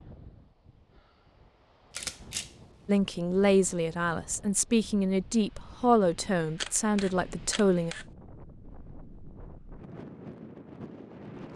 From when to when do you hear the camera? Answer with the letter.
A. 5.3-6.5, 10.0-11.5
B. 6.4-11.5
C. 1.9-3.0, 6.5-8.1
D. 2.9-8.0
C.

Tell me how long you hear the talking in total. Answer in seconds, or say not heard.
5 s.